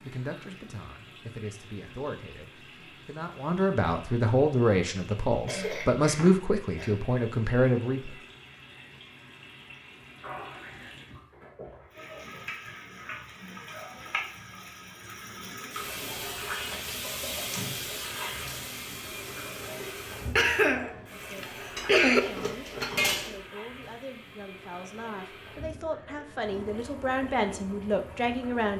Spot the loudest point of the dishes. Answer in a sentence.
The volume of the dishes peaks at 23 seconds.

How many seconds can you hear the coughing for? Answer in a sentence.
The coughing can be heard for 3 seconds in total.